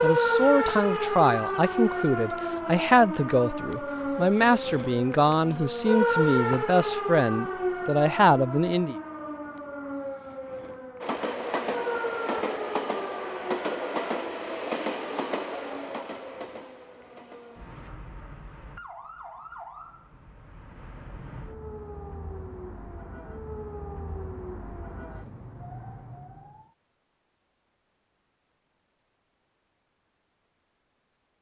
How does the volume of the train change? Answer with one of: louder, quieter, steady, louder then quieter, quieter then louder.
quieter.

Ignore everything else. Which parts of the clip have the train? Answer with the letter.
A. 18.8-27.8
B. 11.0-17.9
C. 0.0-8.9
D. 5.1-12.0
B.